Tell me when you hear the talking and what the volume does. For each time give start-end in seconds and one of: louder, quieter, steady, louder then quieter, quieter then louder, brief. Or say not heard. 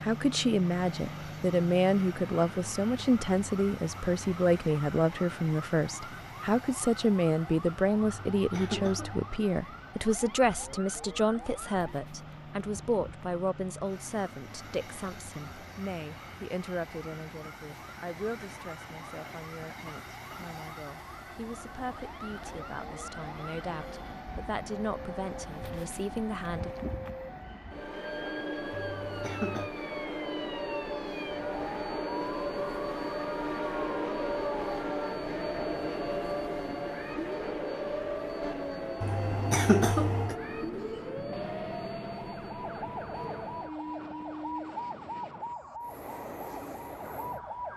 0.0-26.7 quieter.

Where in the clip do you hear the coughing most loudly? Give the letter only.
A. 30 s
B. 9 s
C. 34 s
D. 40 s
D.